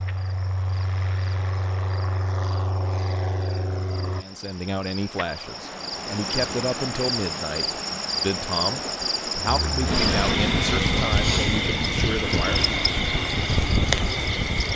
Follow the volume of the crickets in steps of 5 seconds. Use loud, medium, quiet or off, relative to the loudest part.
quiet, loud, loud.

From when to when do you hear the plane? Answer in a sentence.
The plane can be heard from 0.0 to 4.2 s and from 9.4 to 14.7 s.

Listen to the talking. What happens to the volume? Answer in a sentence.
The volume of the talking stays about the same.